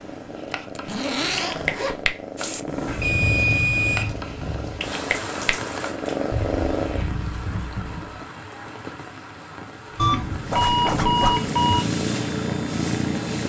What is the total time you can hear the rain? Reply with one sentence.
The rain can be heard for 11 seconds in total.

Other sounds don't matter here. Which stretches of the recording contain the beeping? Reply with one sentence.
You can hear the beeping from 2.9 to 4.2 s and from 9.9 to 11.8 s.